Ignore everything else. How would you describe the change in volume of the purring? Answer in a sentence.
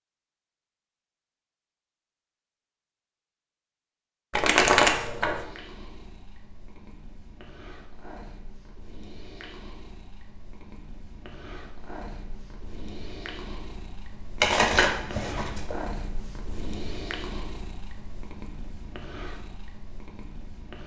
The volume of the purring goes up, then down.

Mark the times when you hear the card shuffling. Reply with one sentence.
You can hear the card shuffling from 4.3 to 5.5 s and from 14.4 to 15.8 s.